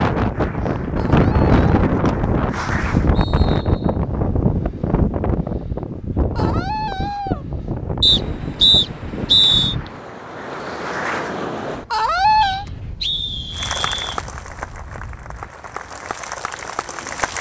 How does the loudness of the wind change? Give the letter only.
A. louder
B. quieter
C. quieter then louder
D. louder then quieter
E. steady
B.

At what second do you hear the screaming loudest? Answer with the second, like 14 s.
12 s.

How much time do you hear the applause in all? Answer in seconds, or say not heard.
9 s.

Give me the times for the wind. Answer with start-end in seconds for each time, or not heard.
0.0-17.3.